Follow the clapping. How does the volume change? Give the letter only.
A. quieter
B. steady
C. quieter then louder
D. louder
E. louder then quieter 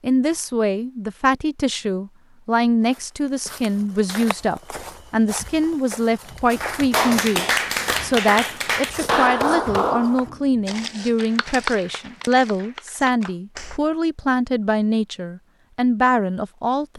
A.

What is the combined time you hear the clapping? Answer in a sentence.
The clapping can be heard for 7 seconds in total.